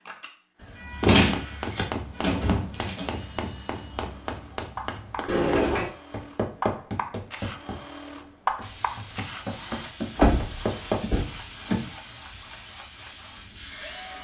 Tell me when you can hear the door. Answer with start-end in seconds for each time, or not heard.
1.0-3.0, 5.2-5.9, 10.2-11.8.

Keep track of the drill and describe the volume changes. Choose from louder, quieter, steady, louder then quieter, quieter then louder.
louder then quieter.